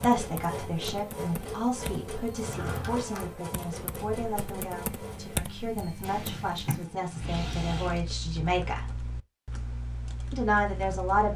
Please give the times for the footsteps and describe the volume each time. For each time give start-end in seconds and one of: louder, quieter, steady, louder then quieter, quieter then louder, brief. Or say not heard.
not heard.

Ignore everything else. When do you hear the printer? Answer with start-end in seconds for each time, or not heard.
0.0-5.4.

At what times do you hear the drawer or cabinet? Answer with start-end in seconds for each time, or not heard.
2.4-3.3, 6.0-8.0.